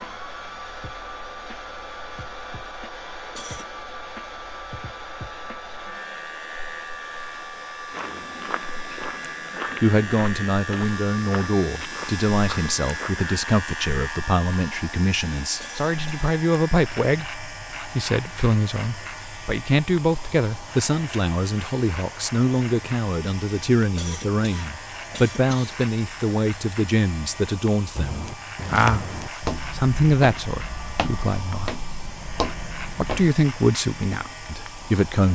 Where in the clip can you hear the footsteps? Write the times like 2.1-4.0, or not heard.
7.9-13.2, 27.9-33.3.